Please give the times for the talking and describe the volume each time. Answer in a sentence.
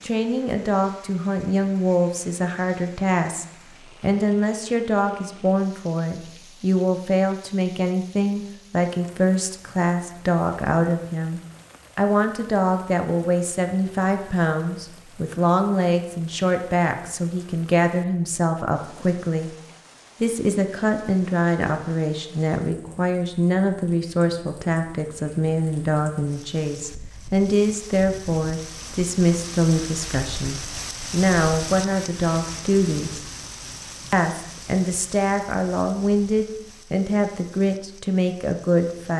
The talking can be heard from 0.0 to 19.6 s, at a steady volume; from 20.2 to 33.2 s, at a steady volume; and from 34.1 to 39.1 s, at a steady volume.